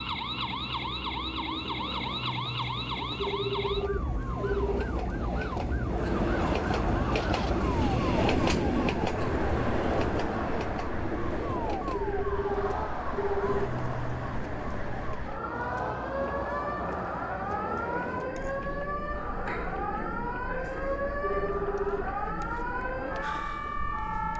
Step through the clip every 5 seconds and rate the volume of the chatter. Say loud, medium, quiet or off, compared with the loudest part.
off, loud, loud, loud, medium.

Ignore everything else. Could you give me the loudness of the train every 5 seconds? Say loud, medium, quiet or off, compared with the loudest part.
medium, loud, medium, quiet, quiet.